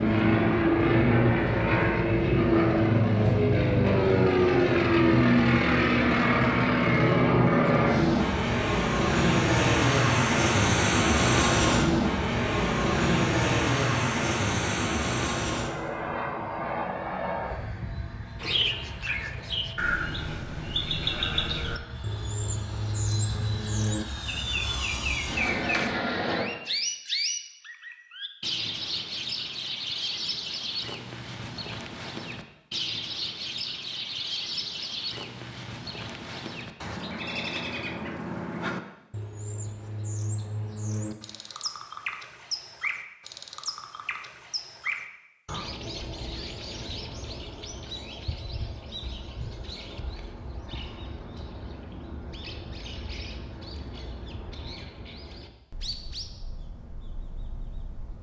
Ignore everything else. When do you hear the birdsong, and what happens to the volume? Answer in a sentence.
The birdsong can be heard from 18.4 to 58.1 s, getting quieter.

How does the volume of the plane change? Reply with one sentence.
The loudness of the plane goes down.